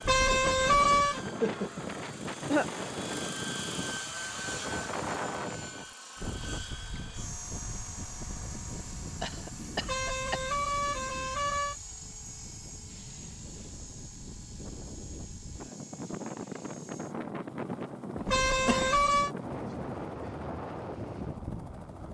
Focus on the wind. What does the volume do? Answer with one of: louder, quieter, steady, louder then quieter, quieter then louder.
quieter then louder.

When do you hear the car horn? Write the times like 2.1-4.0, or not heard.
0.0-1.2, 9.8-11.8, 18.2-19.3.